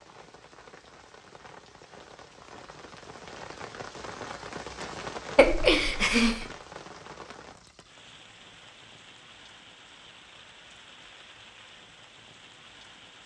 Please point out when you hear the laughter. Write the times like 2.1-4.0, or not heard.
5.3-6.5.